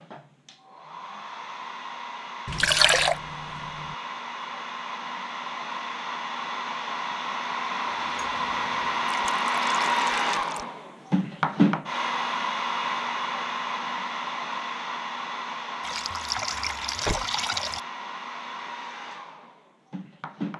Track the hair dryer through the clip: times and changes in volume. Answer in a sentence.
You can hear the hair dryer from 0.0 to 20.5 s, getting louder then quieter.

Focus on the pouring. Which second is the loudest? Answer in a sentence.
The volume of the pouring peaks at 3 seconds.